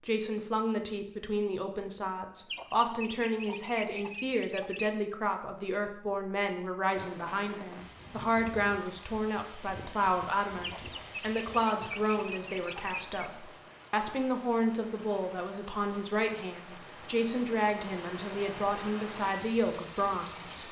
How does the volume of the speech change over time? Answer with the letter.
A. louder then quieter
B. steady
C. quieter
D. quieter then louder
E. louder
B.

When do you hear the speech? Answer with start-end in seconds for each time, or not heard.
0.1-20.6.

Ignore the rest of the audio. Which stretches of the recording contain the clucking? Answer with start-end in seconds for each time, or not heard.
2.4-5.0, 10.5-13.3.